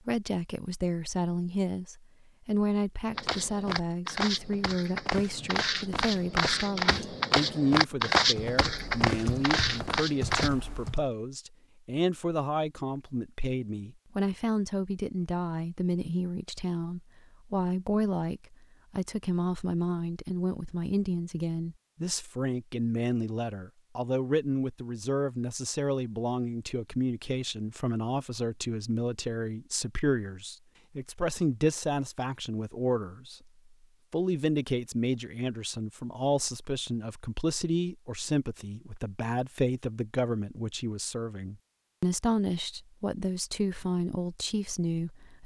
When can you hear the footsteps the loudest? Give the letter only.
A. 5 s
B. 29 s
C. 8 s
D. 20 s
C.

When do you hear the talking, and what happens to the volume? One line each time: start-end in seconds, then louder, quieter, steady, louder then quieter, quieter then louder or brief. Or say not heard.
0.1-33.4 steady
34.1-45.4 steady.